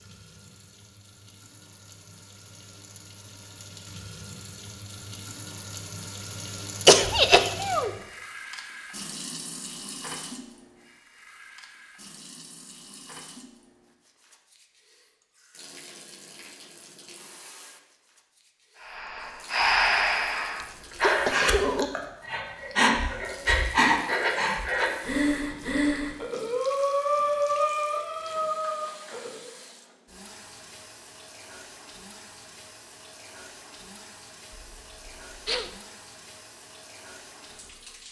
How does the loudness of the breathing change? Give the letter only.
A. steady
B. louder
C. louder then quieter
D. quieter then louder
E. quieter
A.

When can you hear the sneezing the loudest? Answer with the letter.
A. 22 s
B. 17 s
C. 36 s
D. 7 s
D.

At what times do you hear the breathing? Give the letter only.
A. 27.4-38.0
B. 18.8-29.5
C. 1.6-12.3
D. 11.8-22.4
B.